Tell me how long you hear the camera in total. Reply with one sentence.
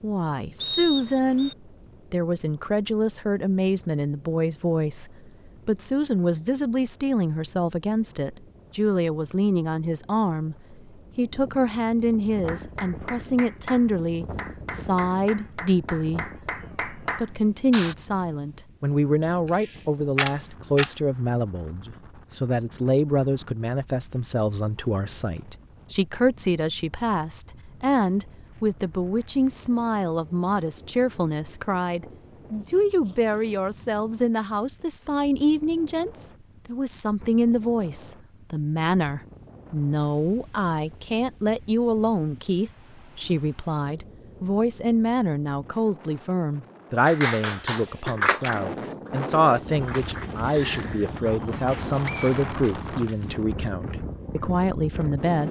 The camera can be heard for 2 seconds in total.